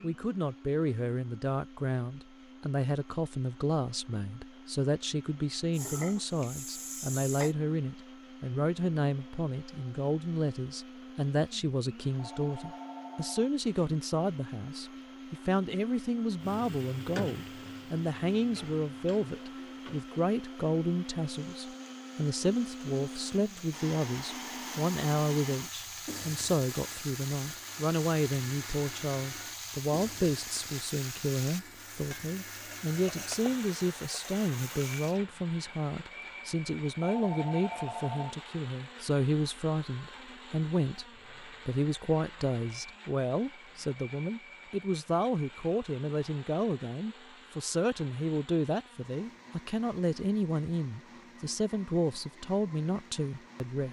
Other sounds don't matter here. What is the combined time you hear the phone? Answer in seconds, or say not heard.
3 s.